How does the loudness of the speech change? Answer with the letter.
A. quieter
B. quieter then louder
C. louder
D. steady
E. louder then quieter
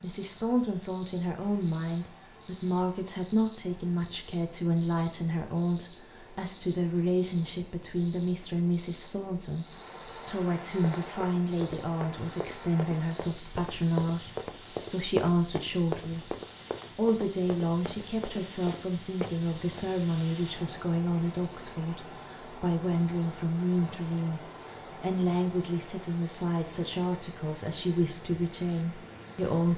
D.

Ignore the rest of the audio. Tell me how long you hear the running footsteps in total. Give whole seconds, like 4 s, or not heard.
9 s.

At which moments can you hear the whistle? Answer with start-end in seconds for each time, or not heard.
not heard.